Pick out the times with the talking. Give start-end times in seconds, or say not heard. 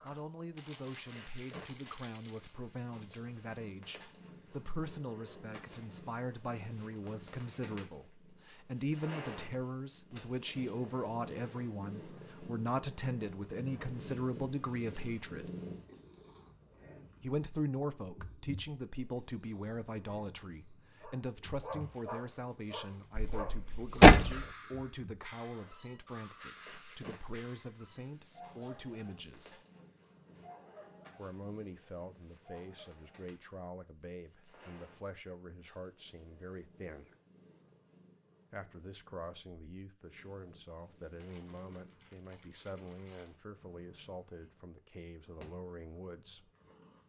0.0-15.5, 17.2-29.6, 31.1-37.1, 38.5-46.5.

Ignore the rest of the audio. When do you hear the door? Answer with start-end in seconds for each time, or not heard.
23.1-24.4.